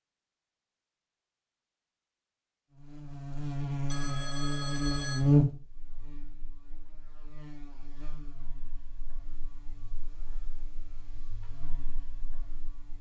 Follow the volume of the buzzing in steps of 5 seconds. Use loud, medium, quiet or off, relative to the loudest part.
loud, loud, quiet.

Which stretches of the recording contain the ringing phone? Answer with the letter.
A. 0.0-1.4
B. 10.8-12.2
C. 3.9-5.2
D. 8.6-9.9
C.